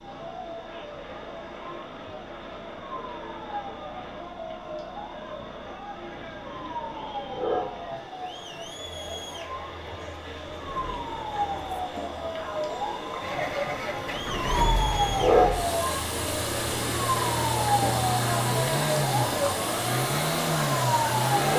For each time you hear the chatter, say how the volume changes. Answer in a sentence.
The chatter can be heard from 0.0 to 21.5 s, getting louder.